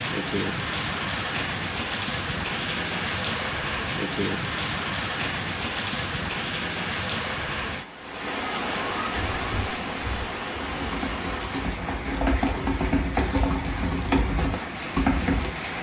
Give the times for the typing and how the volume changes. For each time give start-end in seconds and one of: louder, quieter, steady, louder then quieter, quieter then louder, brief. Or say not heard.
9.1-15.5 louder.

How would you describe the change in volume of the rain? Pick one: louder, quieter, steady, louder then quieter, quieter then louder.
quieter.